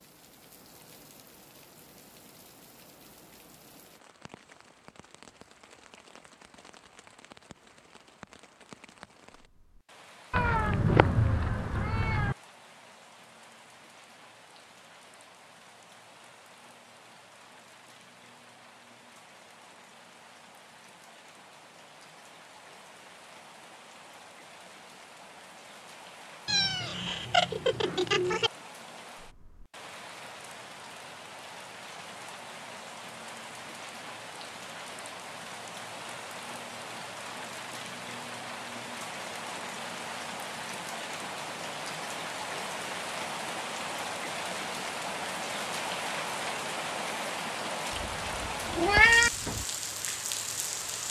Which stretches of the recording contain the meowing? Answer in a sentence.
The meowing can be heard from 10.3 to 12.3 s, from 26.4 to 28.5 s and from 47.9 to 49.6 s.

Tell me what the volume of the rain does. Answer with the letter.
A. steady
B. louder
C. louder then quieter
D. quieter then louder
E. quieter
B.